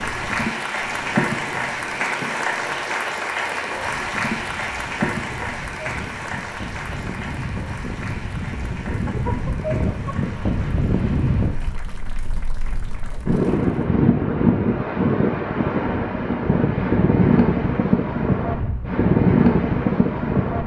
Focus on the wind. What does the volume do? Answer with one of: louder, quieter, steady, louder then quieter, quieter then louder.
louder.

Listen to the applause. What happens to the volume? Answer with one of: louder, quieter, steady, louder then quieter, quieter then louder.
quieter.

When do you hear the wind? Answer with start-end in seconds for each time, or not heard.
0.0-20.6.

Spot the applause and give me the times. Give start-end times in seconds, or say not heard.
0.0-13.9.